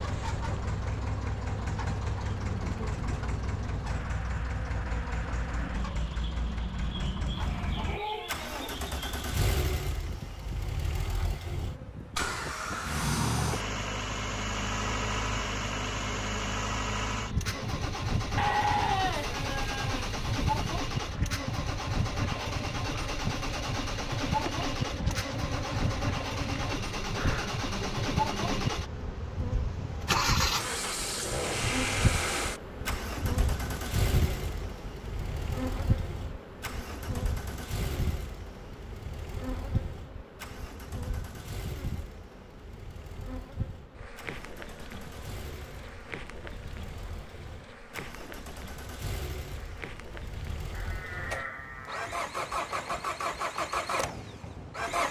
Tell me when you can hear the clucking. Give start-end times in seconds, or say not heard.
not heard.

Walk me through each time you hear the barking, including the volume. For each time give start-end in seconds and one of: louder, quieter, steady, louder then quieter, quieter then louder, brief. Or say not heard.
not heard.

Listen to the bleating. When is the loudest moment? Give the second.
19 s.